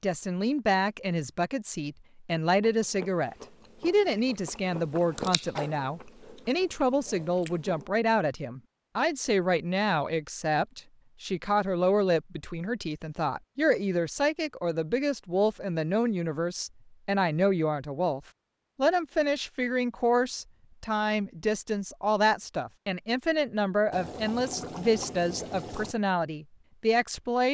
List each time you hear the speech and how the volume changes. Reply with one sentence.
You can hear the speech from 0.0 to 27.4 s, at a steady volume.